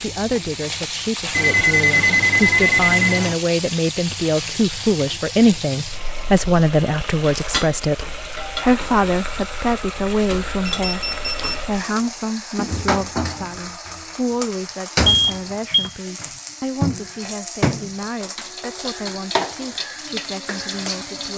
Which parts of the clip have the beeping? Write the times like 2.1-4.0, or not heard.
1.3-3.4, 10.7-11.6, 15.1-15.9.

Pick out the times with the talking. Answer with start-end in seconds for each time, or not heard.
0.0-21.3.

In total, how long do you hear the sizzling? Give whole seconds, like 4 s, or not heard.
21 s.